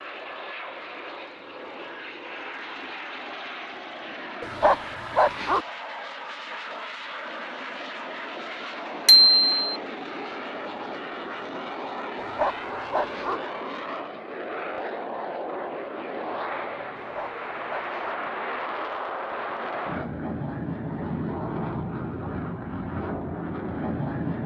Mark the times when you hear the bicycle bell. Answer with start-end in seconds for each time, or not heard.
9.1-9.8.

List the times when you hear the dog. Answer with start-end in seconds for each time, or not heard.
4.4-5.7, 12.2-13.4, 16.9-18.1.